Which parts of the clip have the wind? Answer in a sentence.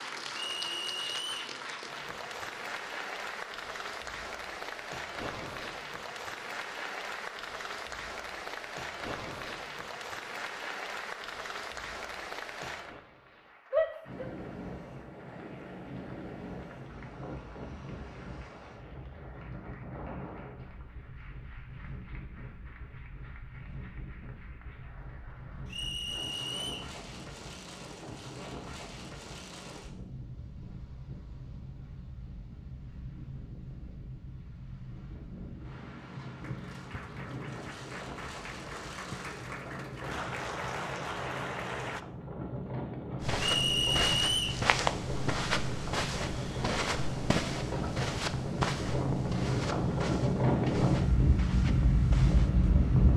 You can hear the wind from 14.0 to 53.1 s.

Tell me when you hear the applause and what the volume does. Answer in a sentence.
The applause can be heard from 0.0 to 26.6 s, getting quieter; and from 36.4 to 42.0 s, getting louder.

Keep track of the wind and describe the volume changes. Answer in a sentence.
The loudness of the wind goes up.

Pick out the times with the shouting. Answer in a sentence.
The shouting can be heard from 13.7 to 14.2 s.